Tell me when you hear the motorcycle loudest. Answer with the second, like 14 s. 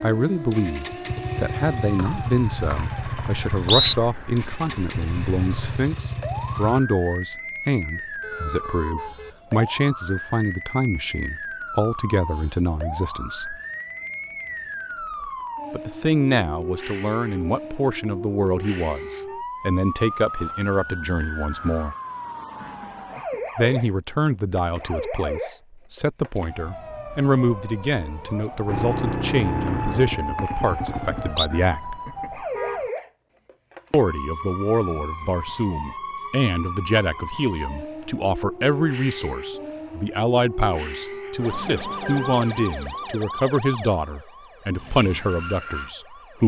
29 s.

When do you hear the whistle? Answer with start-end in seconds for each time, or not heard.
1.9-4.0, 29.6-31.5.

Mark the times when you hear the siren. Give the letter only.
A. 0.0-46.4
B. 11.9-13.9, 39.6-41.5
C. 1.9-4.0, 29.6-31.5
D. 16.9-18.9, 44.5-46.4
A.